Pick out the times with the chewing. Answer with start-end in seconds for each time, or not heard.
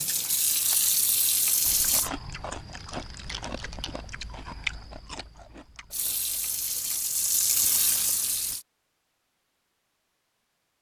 1.6-8.3.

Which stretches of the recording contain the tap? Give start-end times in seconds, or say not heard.
0.0-2.1, 5.9-8.7.